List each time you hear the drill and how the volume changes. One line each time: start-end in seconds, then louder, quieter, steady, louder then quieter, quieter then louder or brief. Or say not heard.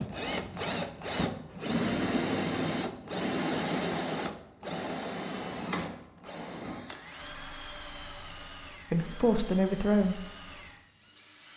0.0-11.5 quieter.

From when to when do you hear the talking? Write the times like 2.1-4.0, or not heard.
8.9-10.2.